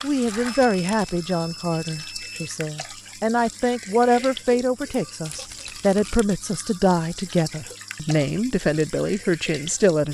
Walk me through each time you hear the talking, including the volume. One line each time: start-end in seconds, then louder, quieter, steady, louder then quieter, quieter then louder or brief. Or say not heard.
0.0-10.0 steady.